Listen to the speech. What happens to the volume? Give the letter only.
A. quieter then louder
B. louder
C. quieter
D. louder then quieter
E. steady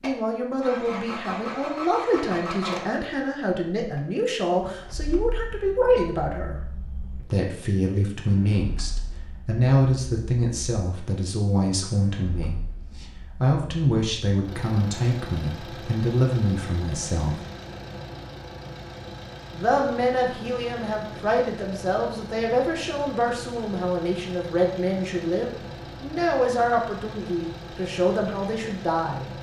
E.